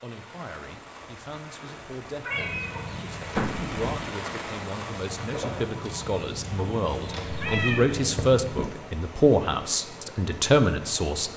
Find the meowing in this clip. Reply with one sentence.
The meowing can be heard from 2.2 to 2.9 s and from 7.2 to 8.8 s.